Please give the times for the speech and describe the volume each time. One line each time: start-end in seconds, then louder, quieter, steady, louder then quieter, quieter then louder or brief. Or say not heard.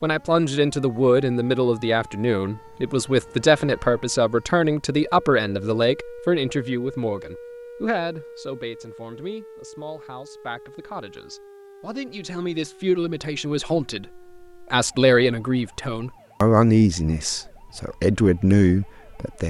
0.0-19.4 quieter then louder.